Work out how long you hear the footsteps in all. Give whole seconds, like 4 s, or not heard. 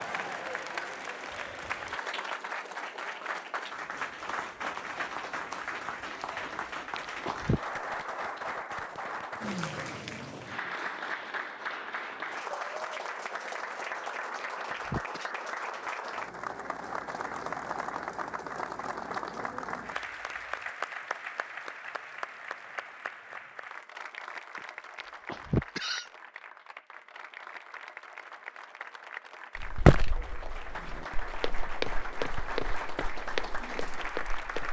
5 s.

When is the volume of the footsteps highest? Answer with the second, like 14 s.
30 s.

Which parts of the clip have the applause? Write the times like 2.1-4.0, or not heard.
0.0-34.6.